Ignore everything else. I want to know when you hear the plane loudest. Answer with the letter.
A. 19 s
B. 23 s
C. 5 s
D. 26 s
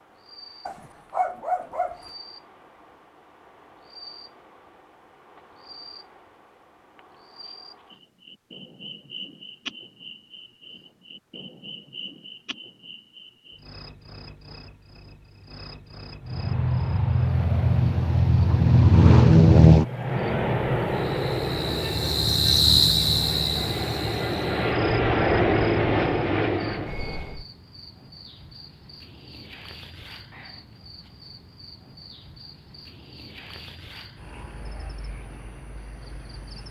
A.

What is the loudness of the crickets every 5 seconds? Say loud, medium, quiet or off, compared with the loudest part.
quiet, quiet, quiet, quiet, loud, quiet, quiet, quiet.